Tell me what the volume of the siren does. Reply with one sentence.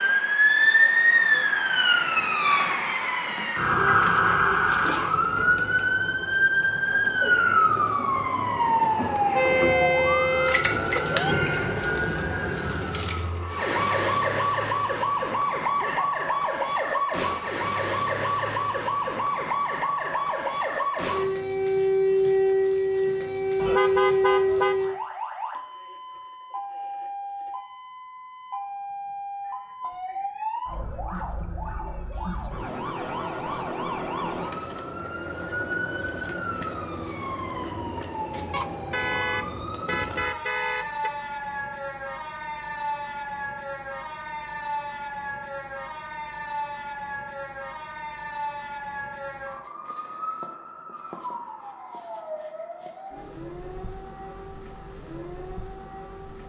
The volume of the siren goes down.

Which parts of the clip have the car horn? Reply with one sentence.
You can hear the car horn from 9.3 to 11.3 s, from 23.6 to 24.8 s and from 38.5 to 41.1 s.